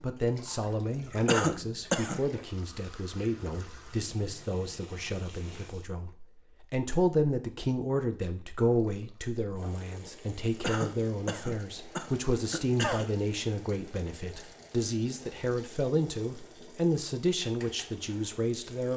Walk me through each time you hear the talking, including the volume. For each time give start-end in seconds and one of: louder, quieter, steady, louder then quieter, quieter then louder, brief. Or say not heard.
0.0-18.9 steady.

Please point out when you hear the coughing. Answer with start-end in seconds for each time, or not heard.
1.2-2.2, 10.6-13.1.